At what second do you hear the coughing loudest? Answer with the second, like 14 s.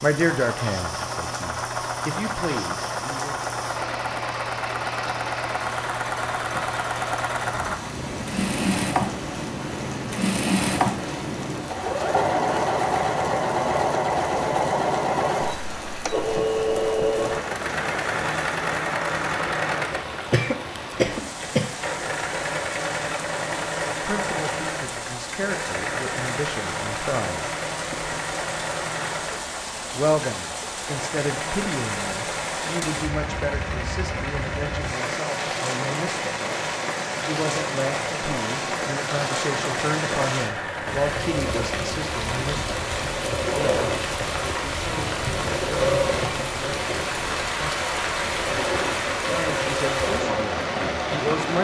21 s.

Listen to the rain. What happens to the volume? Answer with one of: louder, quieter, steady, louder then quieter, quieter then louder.
louder.